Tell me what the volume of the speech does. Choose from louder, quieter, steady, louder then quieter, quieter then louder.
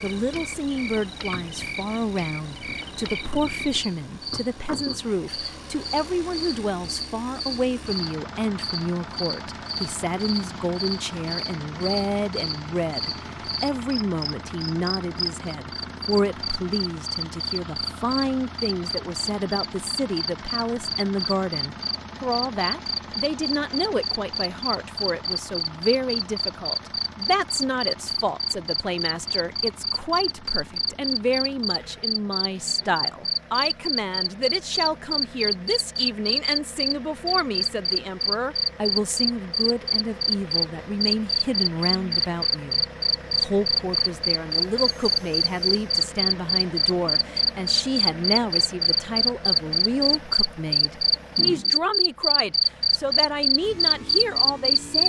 steady.